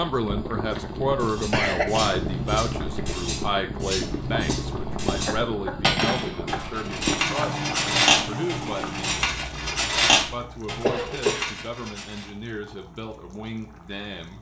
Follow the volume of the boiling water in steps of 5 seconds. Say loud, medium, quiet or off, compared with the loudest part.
loud, loud, quiet.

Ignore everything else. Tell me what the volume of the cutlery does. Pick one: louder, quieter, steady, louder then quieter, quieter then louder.
louder.